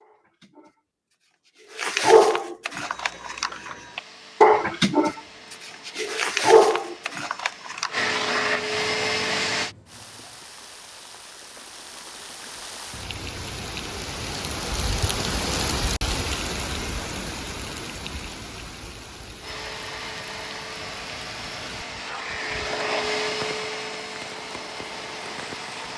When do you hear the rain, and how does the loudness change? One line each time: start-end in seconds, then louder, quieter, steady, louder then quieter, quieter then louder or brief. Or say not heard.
9.8-25.9 louder then quieter.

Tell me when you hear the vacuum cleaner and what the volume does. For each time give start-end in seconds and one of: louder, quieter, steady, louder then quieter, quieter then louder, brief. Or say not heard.
2.7-9.8 louder
19.4-25.9 louder then quieter.